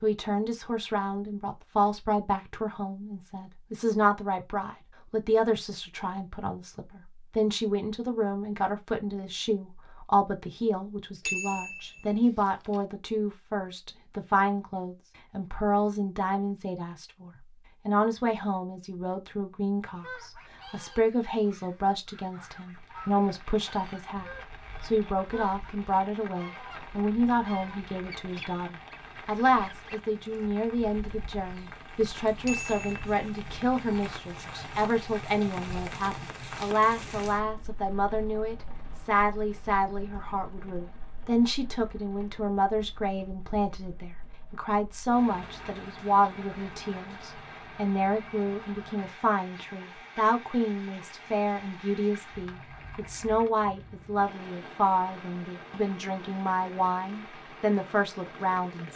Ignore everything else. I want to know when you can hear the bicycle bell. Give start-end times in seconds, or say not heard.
11.2-12.8, 32.5-33.0.